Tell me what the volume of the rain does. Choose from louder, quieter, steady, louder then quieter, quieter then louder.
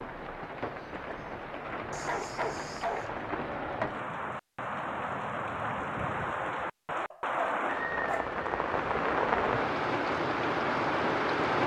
louder.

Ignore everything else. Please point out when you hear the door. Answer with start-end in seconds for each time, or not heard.
not heard.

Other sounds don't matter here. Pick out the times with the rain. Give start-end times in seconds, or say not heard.
0.0-11.6.